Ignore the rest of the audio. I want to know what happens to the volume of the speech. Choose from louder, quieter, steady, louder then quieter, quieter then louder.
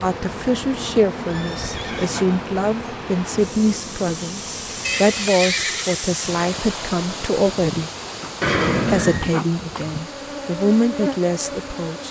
steady.